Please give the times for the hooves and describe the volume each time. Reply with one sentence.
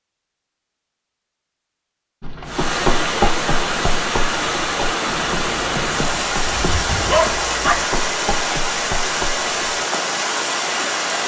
The hooves can be heard from 2.2 to 9.8 s, getting quieter.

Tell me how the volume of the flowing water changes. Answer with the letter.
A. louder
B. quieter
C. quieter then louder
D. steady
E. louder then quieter
D.